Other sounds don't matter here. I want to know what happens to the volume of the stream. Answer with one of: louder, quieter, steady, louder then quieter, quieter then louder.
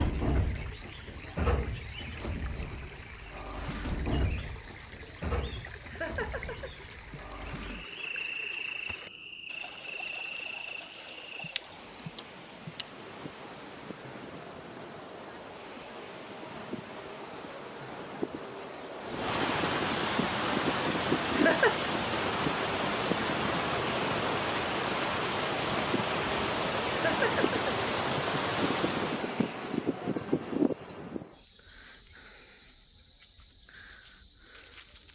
louder.